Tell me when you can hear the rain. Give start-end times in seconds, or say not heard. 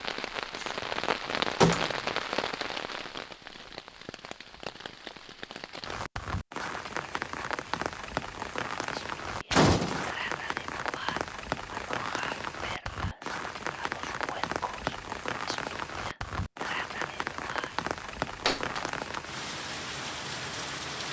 0.0-21.0.